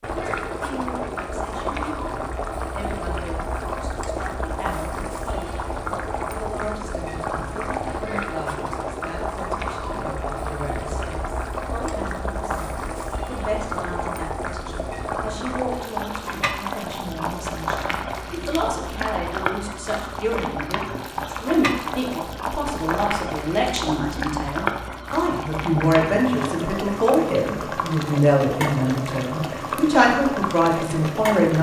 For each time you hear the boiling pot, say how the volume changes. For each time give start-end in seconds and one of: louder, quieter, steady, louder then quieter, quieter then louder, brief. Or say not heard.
0.0-31.5 steady.